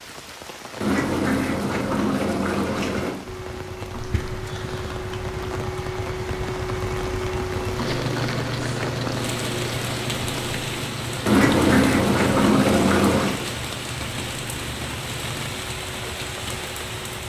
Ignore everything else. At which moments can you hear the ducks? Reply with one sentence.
The ducks can be heard from 0.8 to 3.2 s and from 11.2 to 13.3 s.